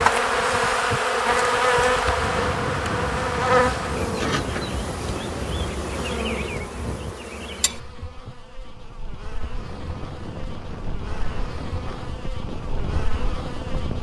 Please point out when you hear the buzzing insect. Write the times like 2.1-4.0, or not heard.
0.0-13.9.